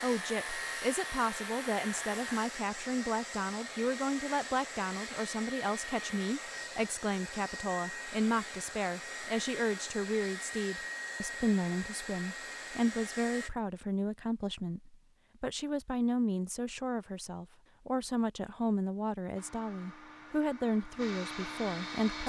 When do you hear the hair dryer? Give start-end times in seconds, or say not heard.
0.0-13.5, 19.4-22.2.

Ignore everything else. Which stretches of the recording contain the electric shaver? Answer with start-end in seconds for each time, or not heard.
0.0-2.5.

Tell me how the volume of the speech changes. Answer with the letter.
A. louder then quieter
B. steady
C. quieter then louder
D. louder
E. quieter
B.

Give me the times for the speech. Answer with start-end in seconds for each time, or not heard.
0.0-22.2.